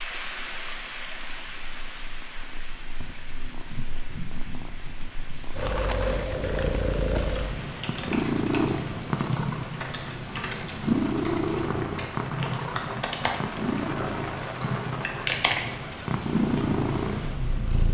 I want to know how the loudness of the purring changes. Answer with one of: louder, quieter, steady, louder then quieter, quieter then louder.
louder.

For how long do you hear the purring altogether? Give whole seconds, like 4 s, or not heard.
18 s.